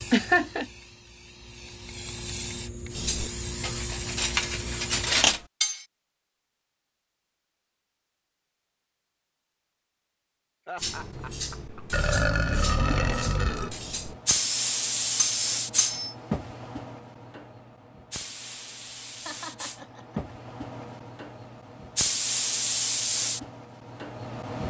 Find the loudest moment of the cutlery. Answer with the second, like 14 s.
5 s.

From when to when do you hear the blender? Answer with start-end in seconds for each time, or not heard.
not heard.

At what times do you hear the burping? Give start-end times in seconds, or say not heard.
11.9-13.7.